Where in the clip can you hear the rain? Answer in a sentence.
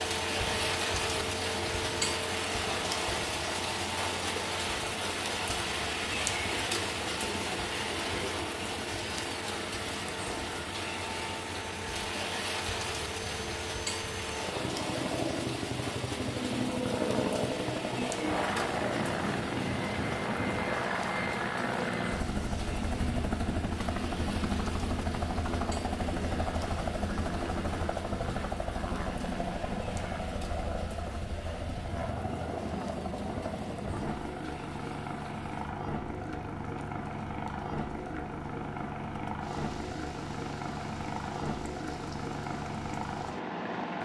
The rain can be heard from 0.0 to 44.0 s.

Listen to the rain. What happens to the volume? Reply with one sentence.
The volume of the rain goes down.